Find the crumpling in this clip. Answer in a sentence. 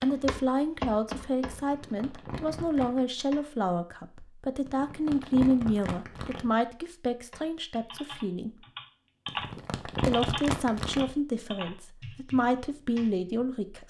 You can hear the crumpling from 1.6 to 3.0 s, from 4.7 to 6.5 s and from 9.2 to 11.2 s.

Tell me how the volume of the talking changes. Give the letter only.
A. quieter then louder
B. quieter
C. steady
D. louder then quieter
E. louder
C.